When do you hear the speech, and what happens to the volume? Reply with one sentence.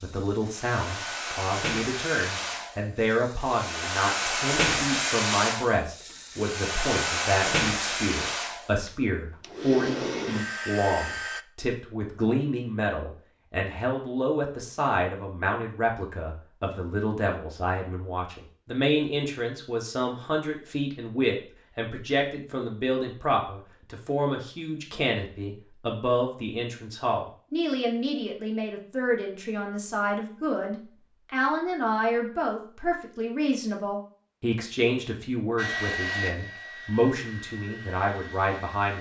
You can hear the speech from 0.0 to 38.9 s, at a steady volume.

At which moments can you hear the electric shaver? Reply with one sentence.
The electric shaver can't be heard in this clip.